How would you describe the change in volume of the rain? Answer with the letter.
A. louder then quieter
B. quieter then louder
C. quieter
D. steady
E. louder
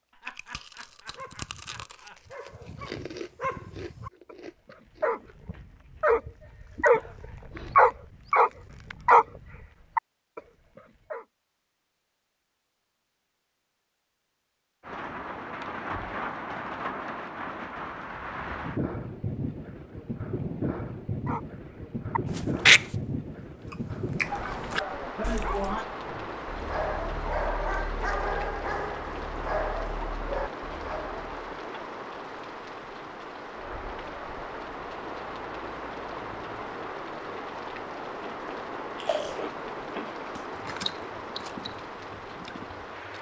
D.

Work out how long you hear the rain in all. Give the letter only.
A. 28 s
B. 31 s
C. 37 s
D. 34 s
A.